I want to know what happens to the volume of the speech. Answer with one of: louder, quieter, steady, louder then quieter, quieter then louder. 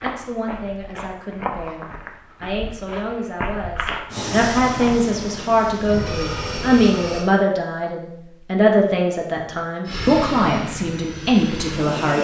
louder.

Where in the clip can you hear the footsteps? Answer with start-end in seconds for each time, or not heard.
0.0-5.1.